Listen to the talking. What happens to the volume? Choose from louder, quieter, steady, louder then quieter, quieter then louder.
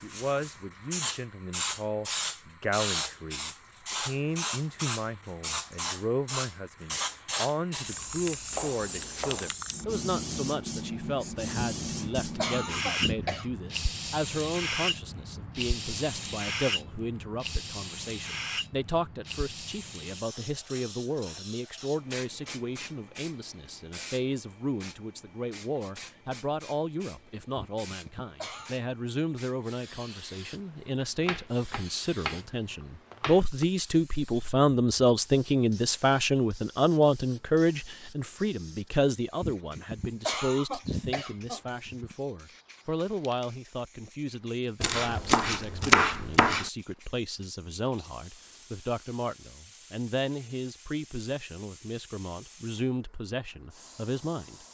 louder then quieter.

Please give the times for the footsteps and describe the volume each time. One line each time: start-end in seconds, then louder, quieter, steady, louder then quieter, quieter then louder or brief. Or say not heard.
not heard.